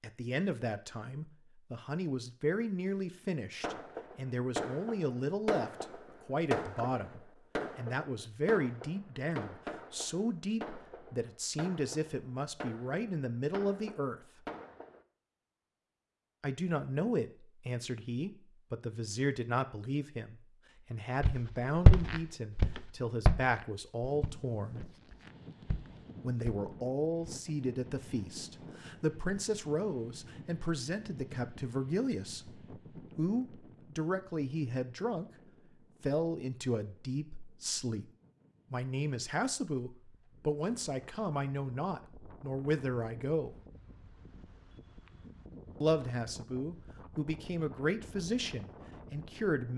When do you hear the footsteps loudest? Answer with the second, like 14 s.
22 s.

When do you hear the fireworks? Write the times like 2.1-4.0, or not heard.
3.6-15.1.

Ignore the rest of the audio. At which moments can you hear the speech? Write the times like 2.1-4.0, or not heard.
0.0-14.2, 16.4-24.8, 26.2-35.2, 36.0-38.0, 38.7-43.5, 45.8-49.7.